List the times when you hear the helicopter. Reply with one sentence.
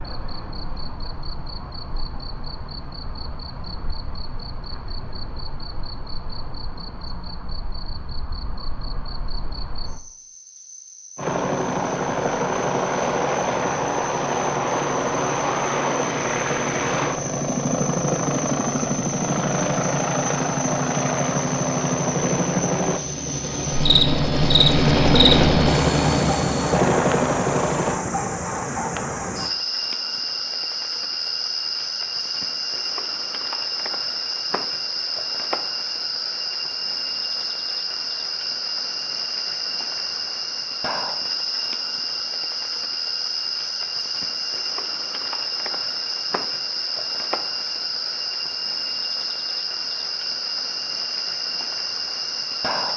You can hear the helicopter from 11.2 to 28.0 s.